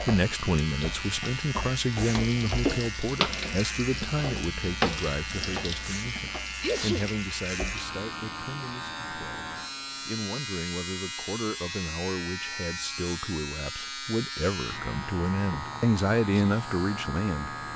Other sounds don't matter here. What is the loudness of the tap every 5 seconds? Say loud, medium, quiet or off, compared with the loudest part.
loud, medium, off, off.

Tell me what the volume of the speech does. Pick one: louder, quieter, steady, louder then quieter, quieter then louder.
quieter then louder.